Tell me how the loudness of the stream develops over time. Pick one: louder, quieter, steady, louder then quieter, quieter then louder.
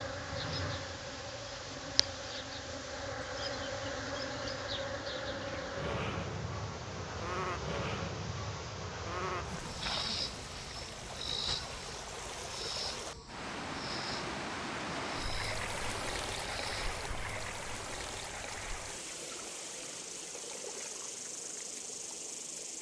louder then quieter.